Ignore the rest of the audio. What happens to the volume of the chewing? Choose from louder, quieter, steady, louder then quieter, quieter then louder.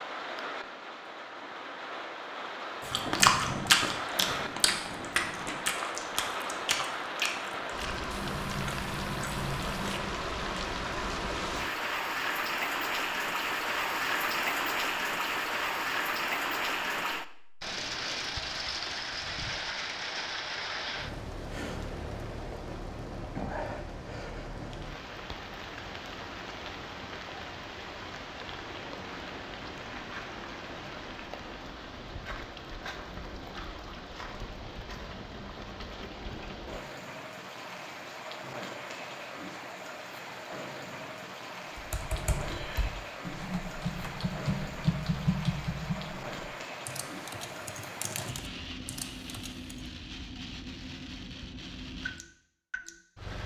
quieter.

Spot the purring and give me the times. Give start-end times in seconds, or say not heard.
not heard.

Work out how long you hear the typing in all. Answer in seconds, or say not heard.
8 s.